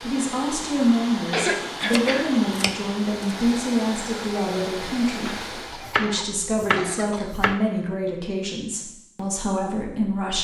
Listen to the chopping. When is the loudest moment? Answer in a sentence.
The volume of the chopping peaks at 7 seconds.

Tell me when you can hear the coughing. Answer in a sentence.
The coughing can be heard from 1.3 to 2.3 s and from 5.7 to 7.4 s.